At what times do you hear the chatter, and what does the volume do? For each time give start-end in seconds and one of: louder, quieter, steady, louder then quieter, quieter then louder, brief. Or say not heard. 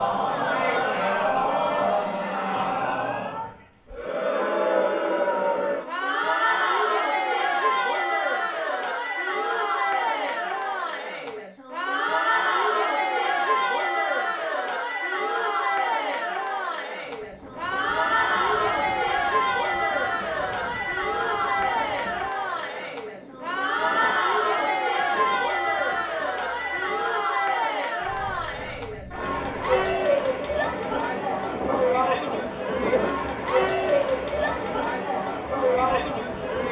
0.0-36.6 steady.